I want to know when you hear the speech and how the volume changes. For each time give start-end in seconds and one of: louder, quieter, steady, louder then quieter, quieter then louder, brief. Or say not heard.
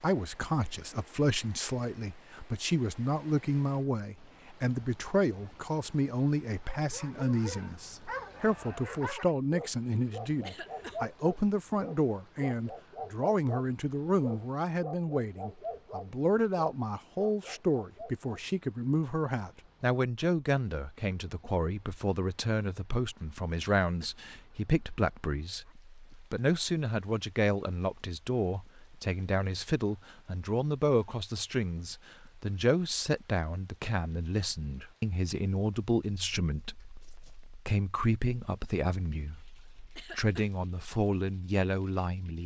0.0-42.4 steady.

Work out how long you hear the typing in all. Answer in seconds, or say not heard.
not heard.